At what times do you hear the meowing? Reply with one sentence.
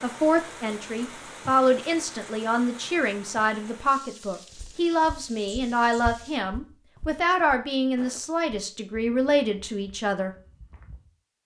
You can't hear the meowing here.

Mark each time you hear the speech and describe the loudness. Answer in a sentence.
You can hear the speech from 0.0 to 10.3 s, at a steady volume.